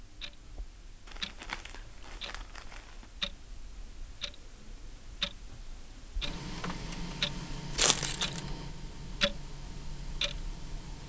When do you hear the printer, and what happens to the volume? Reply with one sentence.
The printer can be heard from 6.2 to 11.0 s, getting quieter.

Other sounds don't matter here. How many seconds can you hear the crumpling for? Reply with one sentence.
You can hear the crumpling for 3 seconds altogether.